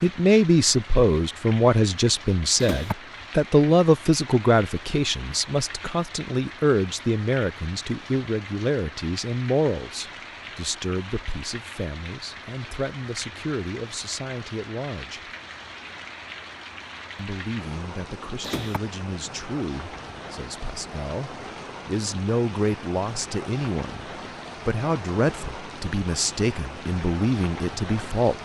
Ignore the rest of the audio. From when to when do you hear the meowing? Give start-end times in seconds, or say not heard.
2.5-3.0, 18.4-18.8.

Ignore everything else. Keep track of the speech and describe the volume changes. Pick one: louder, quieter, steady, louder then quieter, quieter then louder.
quieter then louder.